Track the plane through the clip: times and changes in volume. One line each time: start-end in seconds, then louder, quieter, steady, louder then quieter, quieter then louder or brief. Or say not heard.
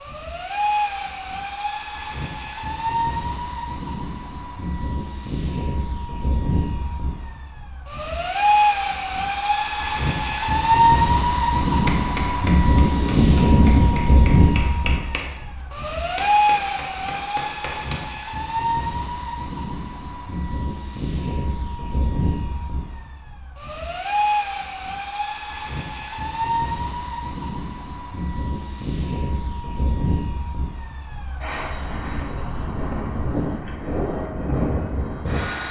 0.0-35.6 louder then quieter.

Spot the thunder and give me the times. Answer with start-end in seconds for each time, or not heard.
12.8-14.2.